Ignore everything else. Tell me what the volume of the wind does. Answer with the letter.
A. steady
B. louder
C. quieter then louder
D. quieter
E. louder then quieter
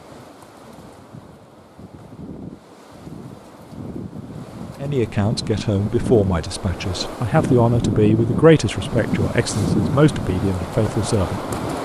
B.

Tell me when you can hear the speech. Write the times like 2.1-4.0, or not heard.
4.8-11.8.